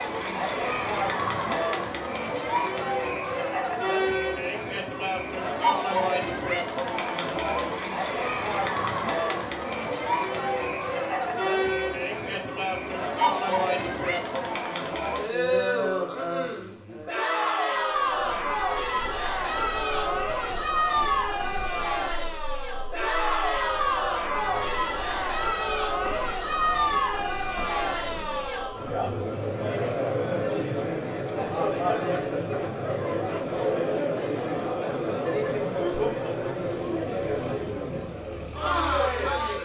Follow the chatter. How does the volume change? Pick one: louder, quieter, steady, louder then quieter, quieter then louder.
steady.